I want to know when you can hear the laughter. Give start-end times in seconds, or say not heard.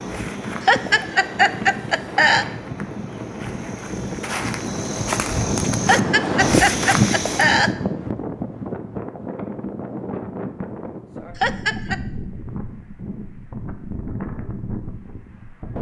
0.6-2.5, 5.8-7.7, 11.3-11.9.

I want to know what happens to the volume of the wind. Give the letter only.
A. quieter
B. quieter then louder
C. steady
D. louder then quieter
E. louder
D.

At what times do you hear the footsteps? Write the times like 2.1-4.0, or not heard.
0.0-7.6.